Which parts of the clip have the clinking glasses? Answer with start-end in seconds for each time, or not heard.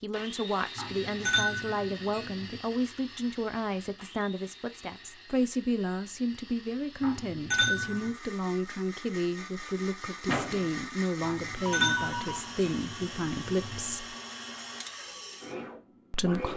0.8-2.6, 7.0-8.1, 11.2-13.8.